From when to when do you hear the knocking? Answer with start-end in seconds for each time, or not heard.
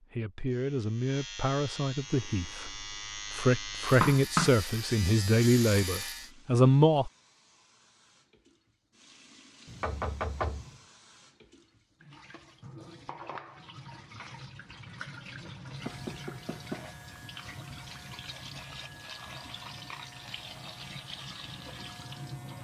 3.9-4.5, 9.7-10.8, 15.8-16.9.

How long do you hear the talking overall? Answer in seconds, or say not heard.
7 s.